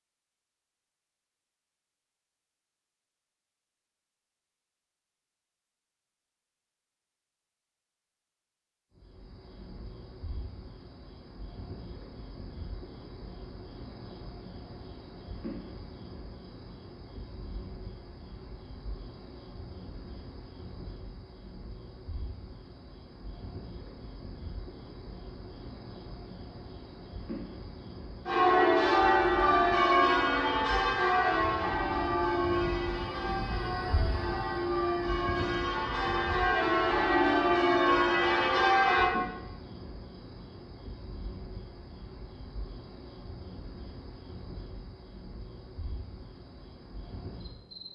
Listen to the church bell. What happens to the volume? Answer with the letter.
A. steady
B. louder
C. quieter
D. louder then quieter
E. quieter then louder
E.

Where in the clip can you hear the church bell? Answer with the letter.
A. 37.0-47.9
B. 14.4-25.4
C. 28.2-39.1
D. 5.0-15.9
C.